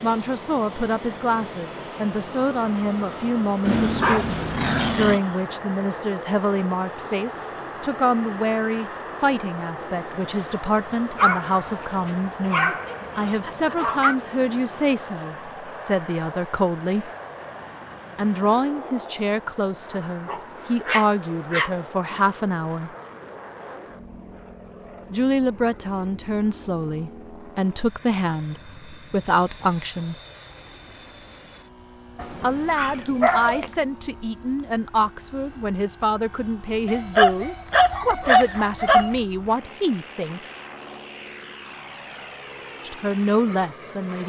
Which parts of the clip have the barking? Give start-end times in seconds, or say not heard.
3.6-5.2, 11.2-14.2, 20.2-22.2, 32.1-33.7, 36.9-39.2.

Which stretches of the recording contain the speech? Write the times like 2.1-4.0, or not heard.
0.0-17.1, 18.1-22.9, 25.1-30.1, 32.4-40.4, 42.9-44.2.